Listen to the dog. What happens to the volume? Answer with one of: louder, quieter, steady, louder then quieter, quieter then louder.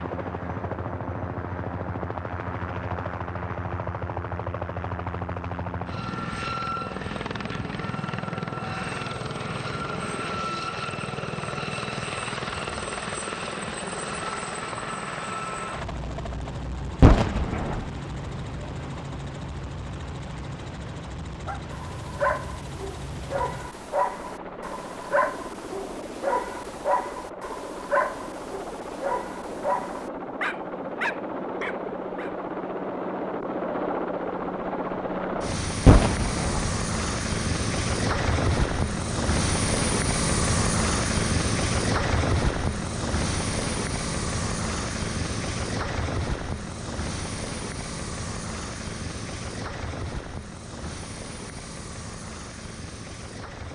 steady.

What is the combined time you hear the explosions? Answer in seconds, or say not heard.
2 s.